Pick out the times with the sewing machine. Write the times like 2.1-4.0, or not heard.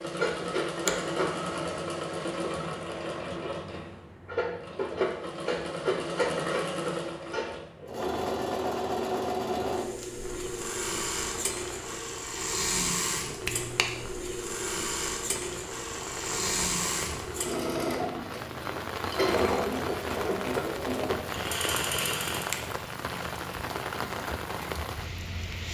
0.0-22.6.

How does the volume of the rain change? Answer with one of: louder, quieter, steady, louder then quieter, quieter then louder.
louder.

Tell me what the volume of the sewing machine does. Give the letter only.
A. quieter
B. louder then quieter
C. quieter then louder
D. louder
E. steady
E.